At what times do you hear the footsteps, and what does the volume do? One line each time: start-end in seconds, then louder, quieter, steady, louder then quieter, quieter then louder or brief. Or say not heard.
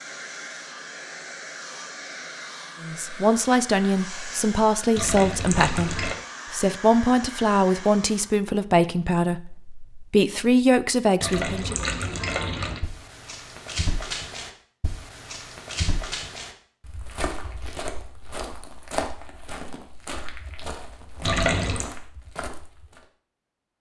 12.8-23.1 quieter.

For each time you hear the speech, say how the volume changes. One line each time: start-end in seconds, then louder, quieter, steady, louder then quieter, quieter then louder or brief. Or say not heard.
2.8-11.8 steady.